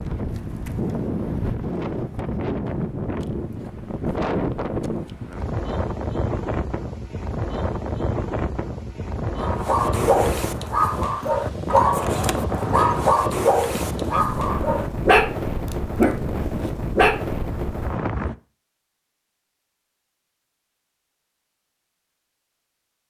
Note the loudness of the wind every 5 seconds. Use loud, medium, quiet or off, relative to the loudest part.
loud, loud, loud, loud, off.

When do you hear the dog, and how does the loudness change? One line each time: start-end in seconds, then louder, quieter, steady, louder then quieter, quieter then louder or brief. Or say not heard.
9.3-17.2 steady.